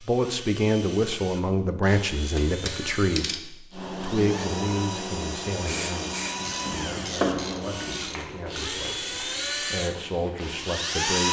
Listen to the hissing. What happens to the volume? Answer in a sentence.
The volume of the hissing goes down.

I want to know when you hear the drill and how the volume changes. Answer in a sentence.
The drill can be heard from 0.0 to 11.2 s, getting louder.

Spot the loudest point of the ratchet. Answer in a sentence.
The loudest moment of the ratchet is at 7 seconds.